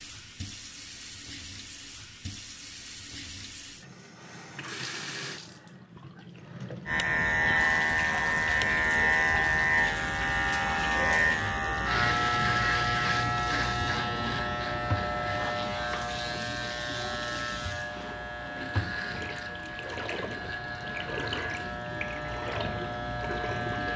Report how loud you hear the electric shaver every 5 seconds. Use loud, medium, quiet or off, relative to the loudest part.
off, loud, loud, medium, medium.